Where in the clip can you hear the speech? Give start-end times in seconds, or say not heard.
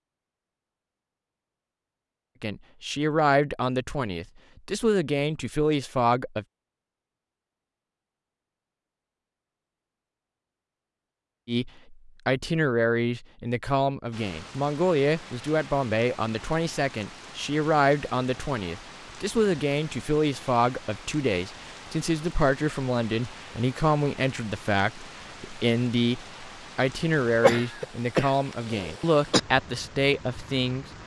2.4-6.5, 11.4-30.9.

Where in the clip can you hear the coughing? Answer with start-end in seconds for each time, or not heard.
27.4-29.4.